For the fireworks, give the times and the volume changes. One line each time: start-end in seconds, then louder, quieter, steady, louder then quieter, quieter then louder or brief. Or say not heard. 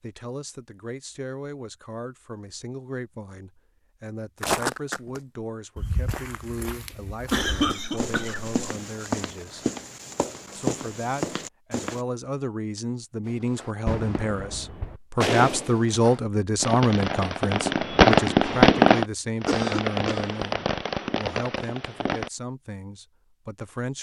13.2-22.3 louder then quieter.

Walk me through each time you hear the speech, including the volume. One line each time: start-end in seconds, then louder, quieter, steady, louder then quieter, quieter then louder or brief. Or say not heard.
0.0-9.7 steady
10.6-23.9 louder then quieter.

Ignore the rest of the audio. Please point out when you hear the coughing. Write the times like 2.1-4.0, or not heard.
7.3-8.5, 19.4-20.4.